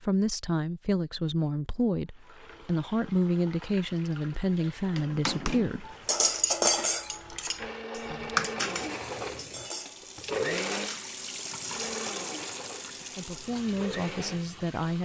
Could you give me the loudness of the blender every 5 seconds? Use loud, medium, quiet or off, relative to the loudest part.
off, loud, loud.